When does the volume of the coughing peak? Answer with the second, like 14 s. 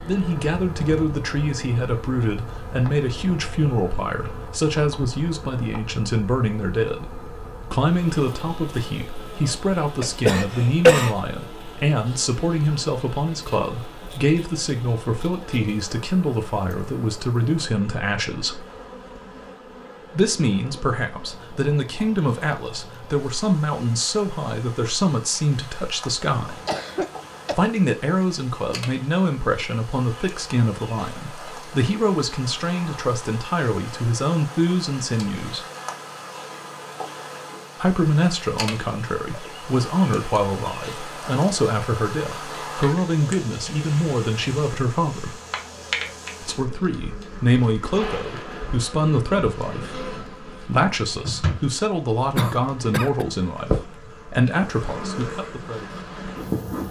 11 s.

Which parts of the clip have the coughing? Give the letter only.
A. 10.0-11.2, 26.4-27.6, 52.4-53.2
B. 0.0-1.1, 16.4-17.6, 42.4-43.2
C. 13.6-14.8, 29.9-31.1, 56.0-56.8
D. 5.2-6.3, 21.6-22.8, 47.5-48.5
A.